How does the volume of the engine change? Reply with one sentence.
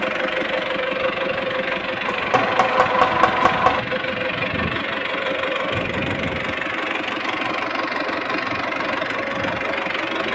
The volume of the engine stays about the same.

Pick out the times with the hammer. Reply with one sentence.
The hammer can be heard from 2.0 to 3.8 s.